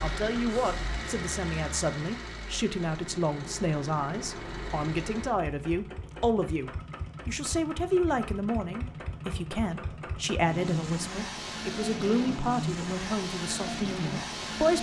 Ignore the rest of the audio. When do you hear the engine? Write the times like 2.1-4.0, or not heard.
0.0-14.7.